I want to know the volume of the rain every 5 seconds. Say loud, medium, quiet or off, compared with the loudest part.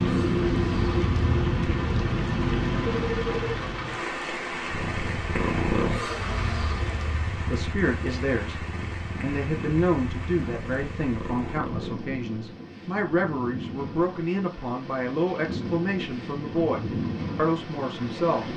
loud, medium, quiet, medium.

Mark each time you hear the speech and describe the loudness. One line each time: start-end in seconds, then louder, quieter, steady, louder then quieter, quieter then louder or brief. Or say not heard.
7.3-18.5 steady.